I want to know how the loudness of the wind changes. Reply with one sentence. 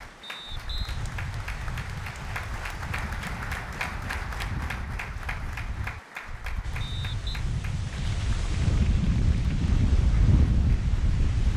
The volume of the wind goes up.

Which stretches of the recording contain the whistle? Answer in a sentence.
You can hear the whistle from 0.2 to 1.0 s and from 6.8 to 7.3 s.